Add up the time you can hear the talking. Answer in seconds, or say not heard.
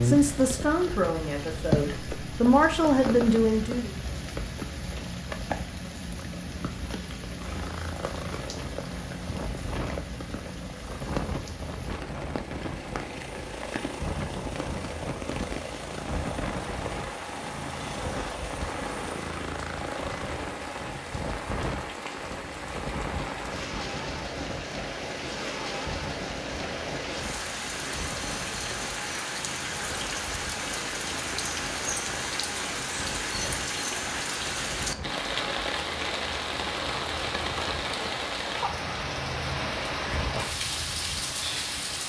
4 s.